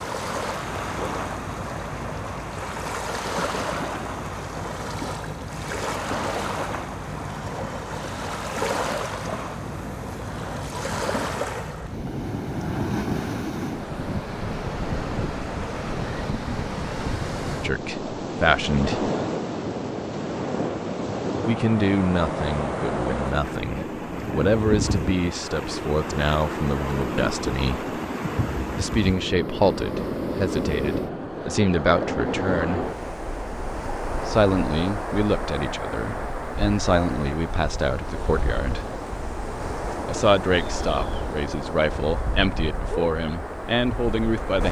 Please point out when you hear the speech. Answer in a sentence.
You can hear the speech from 17.6 to 19.1 s, from 21.4 to 27.9 s, from 28.8 to 32.9 s, from 34.2 to 38.9 s and from 40.0 to 44.6 s.